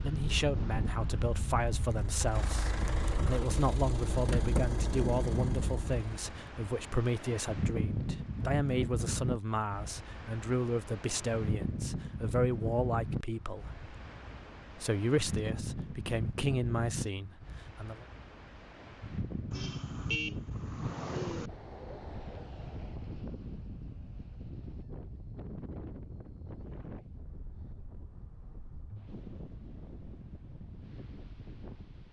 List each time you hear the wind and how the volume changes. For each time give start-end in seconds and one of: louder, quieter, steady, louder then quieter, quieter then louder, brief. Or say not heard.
0.0-32.0 quieter.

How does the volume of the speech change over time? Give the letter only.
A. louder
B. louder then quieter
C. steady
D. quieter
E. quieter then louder
C.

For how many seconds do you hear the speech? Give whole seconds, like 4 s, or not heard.
17 s.